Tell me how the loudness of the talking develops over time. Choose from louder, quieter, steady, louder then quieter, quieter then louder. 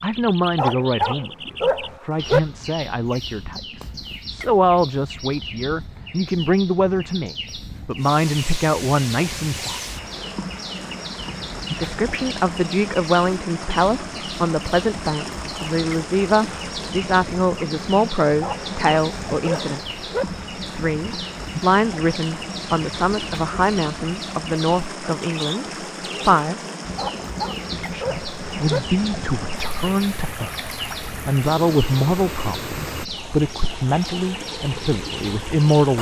steady.